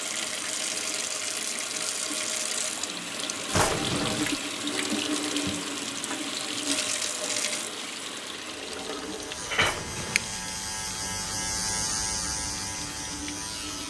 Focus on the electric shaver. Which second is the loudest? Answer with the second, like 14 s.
12 s.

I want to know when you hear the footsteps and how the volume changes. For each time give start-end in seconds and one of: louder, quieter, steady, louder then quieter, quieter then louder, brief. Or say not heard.
not heard.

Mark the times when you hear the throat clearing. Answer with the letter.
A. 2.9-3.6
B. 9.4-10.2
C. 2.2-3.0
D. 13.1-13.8
B.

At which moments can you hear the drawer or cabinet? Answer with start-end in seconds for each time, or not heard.
3.5-4.3, 9.6-10.4.